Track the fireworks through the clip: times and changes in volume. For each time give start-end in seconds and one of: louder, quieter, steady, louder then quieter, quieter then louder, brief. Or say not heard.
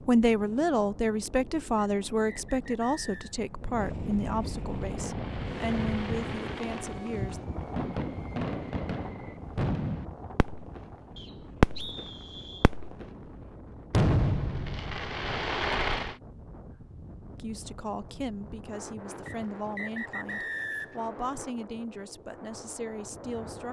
4.7-10.8 louder
11.6-13.1 brief
13.9-16.1 brief.